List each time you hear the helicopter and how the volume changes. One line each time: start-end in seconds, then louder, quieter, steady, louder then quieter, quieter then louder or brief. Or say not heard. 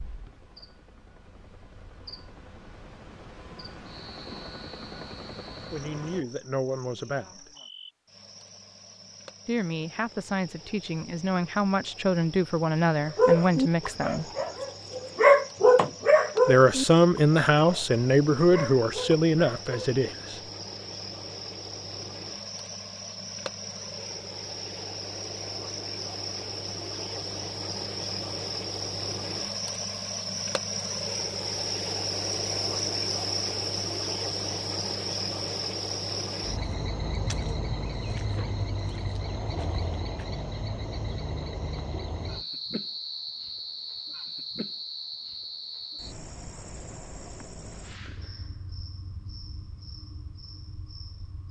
0.0-6.2 louder.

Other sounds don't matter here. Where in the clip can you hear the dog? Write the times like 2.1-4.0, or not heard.
13.2-19.9.